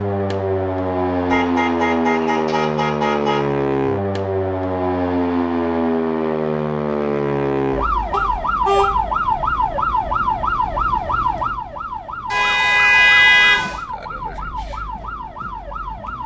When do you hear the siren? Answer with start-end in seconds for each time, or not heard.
0.0-16.2.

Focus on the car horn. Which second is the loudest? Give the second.
13 s.